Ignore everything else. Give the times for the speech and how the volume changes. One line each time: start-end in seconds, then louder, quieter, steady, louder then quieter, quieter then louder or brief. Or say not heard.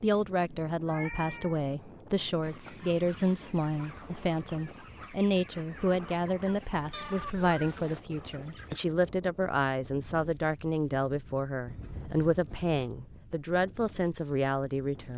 0.0-15.1 steady.